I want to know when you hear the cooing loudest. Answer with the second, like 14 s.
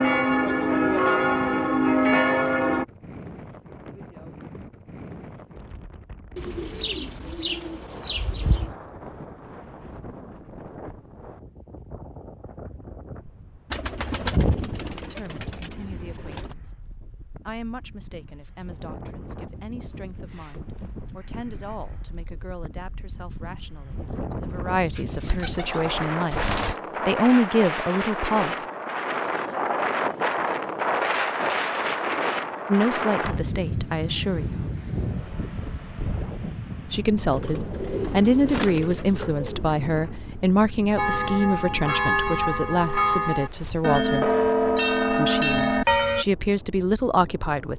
14 s.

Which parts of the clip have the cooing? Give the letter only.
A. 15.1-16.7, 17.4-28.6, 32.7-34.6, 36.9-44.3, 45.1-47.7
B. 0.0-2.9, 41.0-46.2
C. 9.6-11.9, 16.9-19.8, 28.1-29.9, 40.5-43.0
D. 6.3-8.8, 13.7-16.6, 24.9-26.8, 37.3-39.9
D.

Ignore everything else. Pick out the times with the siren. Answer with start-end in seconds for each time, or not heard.
not heard.